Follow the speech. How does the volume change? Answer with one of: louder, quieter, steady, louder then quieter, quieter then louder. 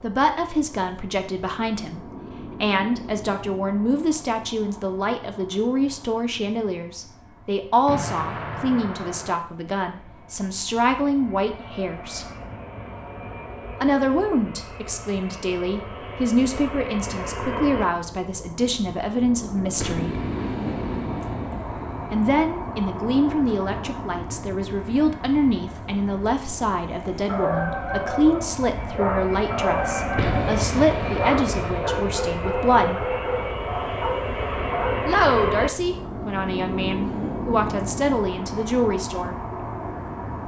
steady.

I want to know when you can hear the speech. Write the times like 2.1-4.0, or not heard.
0.0-12.3, 13.8-20.1, 22.1-33.0, 35.0-39.4.